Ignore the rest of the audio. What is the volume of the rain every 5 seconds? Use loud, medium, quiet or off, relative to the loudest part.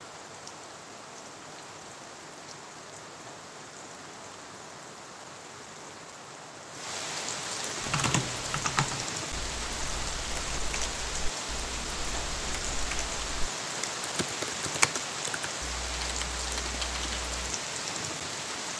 medium, loud, loud, loud.